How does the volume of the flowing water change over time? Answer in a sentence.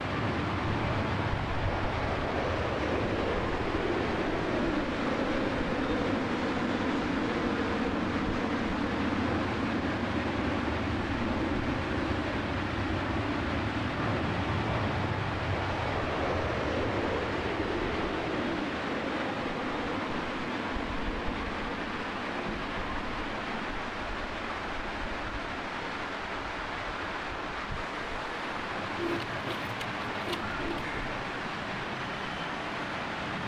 The volume of the flowing water stays about the same.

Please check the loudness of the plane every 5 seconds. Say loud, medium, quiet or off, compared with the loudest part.
loud, loud, loud, loud, medium, quiet, quiet.